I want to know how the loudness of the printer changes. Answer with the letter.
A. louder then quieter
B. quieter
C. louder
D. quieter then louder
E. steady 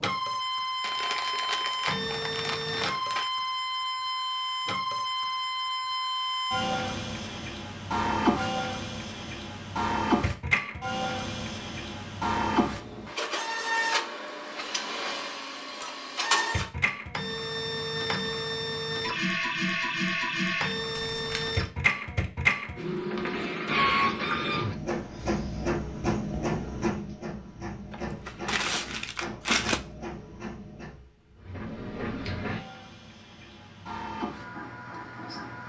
B.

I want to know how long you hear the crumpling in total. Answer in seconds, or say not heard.
5 s.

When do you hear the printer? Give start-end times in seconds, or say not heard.
0.0-35.6.